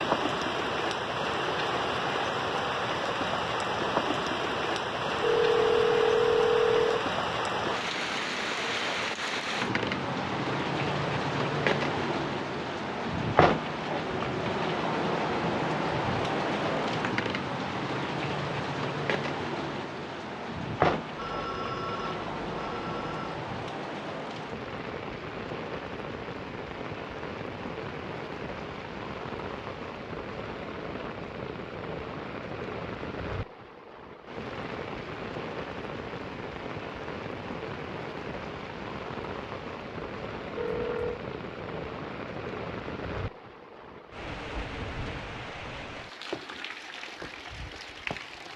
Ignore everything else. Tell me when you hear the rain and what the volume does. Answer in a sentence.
You can hear the rain from 0.0 to 48.5 s, getting quieter.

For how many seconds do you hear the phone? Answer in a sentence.
The phone can be heard for 5 seconds in total.